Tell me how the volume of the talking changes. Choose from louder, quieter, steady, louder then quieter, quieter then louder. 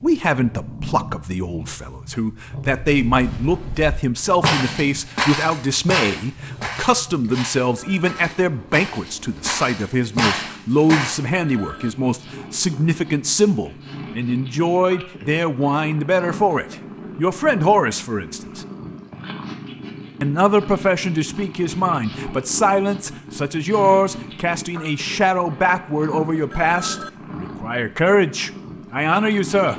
steady.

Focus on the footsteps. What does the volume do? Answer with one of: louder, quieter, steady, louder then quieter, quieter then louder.
quieter then louder.